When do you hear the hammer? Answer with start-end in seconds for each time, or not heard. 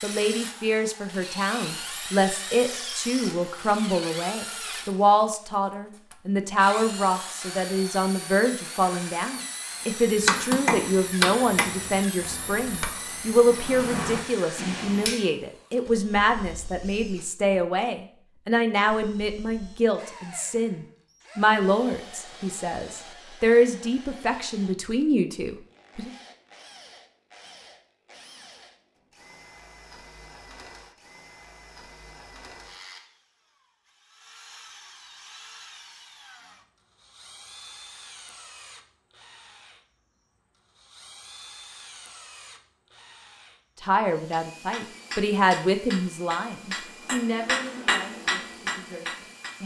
10.2-15.2, 44.3-49.5.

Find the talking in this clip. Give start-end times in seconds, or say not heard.
0.0-26.1, 43.8-49.6.